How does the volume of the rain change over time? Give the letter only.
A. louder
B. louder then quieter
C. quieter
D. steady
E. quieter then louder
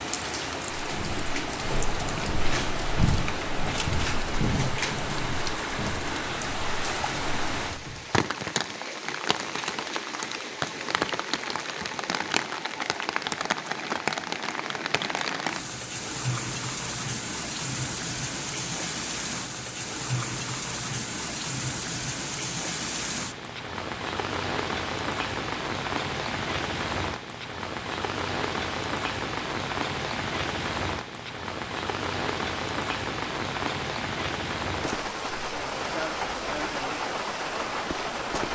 D.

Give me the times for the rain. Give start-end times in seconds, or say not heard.
0.0-38.5.